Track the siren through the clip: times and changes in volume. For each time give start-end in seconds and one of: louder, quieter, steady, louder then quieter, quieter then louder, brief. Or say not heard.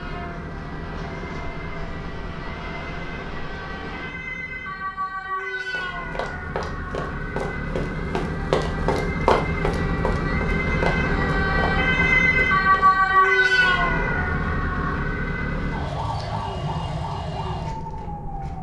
0.0-18.5 louder then quieter.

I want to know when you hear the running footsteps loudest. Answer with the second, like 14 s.
9 s.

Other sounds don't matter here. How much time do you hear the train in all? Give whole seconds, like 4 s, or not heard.
4 s.